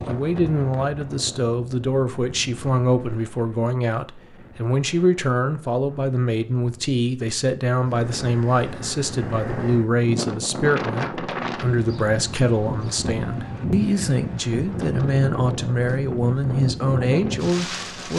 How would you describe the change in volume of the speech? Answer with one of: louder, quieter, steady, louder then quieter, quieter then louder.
steady.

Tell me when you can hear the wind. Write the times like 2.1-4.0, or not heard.
0.0-18.1.